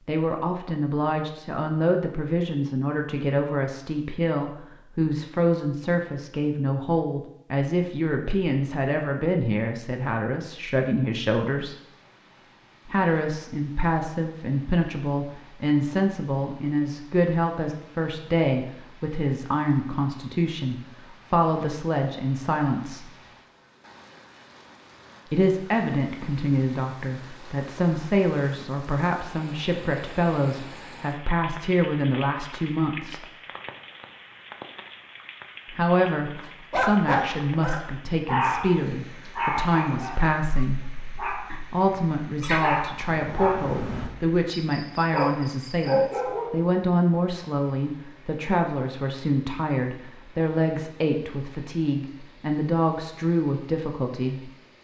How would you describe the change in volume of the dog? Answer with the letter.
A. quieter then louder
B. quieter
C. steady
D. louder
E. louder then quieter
A.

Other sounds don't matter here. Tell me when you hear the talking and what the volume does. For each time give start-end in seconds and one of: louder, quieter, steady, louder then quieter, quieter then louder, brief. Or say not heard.
0.1-11.8 steady
12.8-23.1 steady
25.2-33.2 steady
35.7-54.5 steady.